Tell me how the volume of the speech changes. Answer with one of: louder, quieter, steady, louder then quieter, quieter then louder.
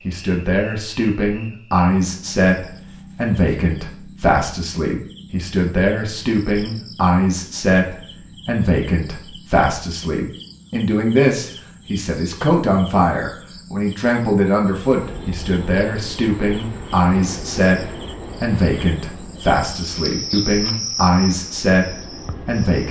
steady.